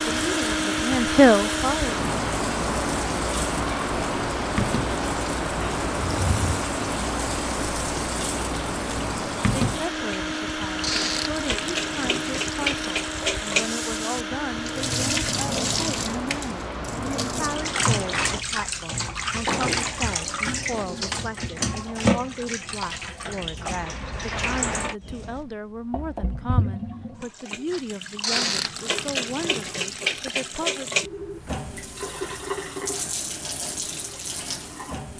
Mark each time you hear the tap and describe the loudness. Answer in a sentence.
You can hear the tap from 0.0 to 35.1 s, getting louder.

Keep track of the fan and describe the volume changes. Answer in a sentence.
The loudness of the fan goes down.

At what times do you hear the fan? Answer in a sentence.
The fan can be heard from 0.0 to 18.4 s.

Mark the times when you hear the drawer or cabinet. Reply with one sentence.
You can hear the drawer or cabinet from 6.1 to 6.6 s and from 19.4 to 21.0 s.